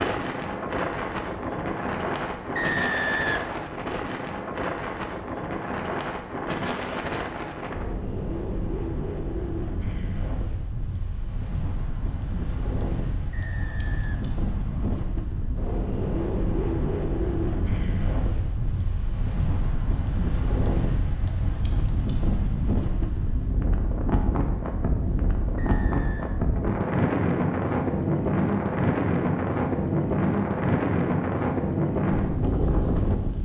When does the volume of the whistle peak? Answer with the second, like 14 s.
3 s.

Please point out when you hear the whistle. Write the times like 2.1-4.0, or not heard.
2.5-3.7, 13.3-15.0, 25.6-26.4.